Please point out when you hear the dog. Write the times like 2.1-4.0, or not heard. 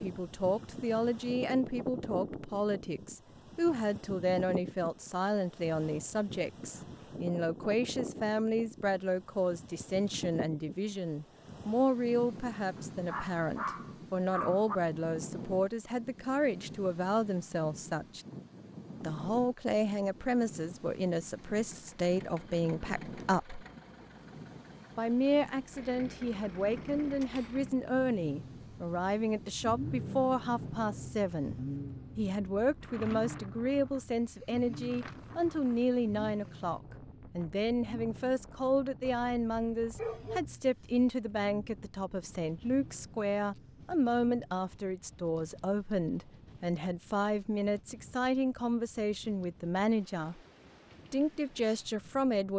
12.8-14.8, 39.0-40.4.